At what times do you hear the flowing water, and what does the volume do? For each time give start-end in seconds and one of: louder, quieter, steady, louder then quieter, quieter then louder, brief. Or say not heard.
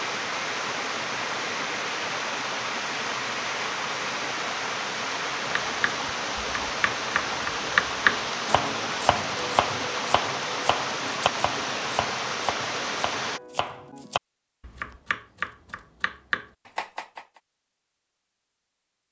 0.0-13.4 steady.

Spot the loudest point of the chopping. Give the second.
8 s.